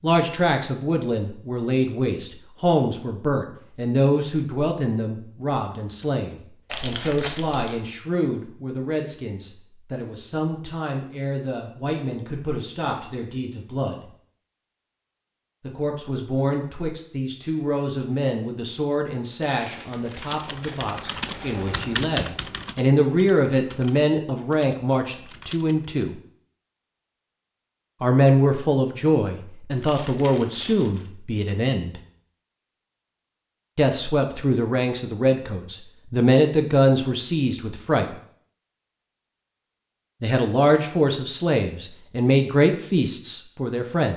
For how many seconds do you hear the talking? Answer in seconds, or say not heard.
37 s.